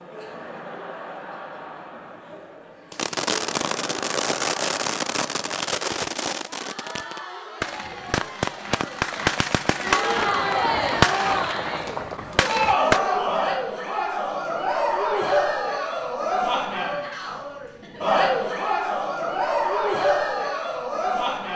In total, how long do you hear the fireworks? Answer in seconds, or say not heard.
10 s.